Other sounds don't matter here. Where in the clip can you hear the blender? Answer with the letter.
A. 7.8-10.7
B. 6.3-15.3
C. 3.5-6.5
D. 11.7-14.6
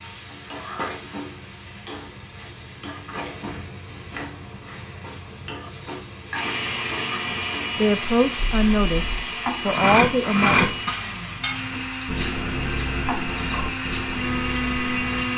B.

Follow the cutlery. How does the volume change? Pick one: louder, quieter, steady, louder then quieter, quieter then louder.
quieter.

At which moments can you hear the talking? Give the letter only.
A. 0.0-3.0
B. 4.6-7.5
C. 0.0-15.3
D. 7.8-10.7
D.